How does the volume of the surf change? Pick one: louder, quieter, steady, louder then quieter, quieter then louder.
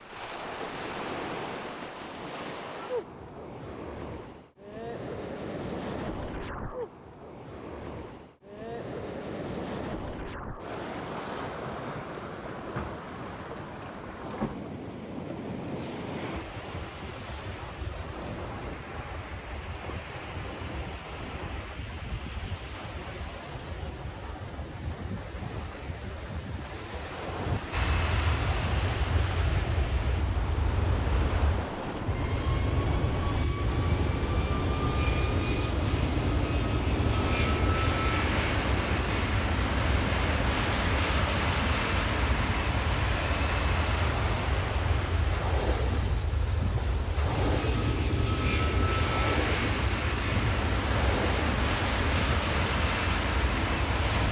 steady.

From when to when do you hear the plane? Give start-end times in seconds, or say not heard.
27.7-54.2.